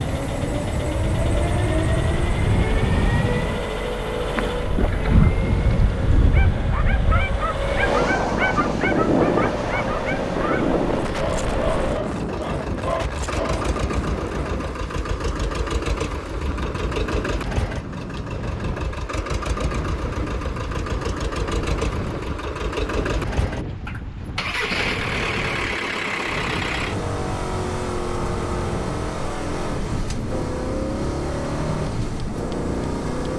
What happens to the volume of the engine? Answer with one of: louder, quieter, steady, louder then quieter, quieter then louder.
steady.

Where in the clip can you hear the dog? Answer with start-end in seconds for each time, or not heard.
6.3-13.7.